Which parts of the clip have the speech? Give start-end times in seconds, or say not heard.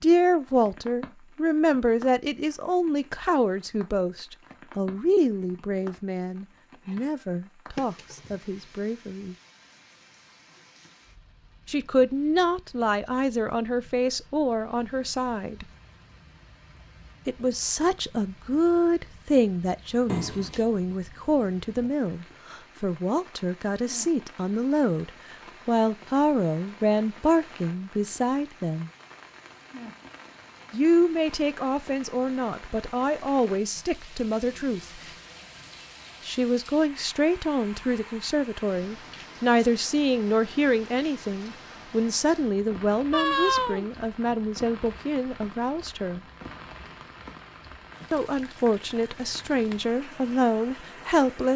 0.0-9.3, 11.7-15.7, 17.2-28.9, 30.7-35.1, 36.2-46.2, 48.1-51.5.